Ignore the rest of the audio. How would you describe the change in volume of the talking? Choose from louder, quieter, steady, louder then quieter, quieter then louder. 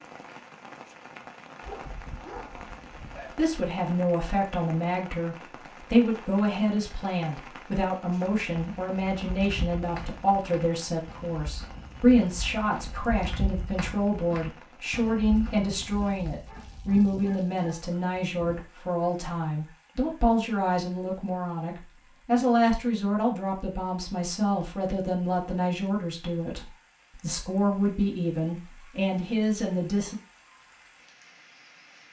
steady.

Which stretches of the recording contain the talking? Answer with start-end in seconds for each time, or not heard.
3.4-30.1.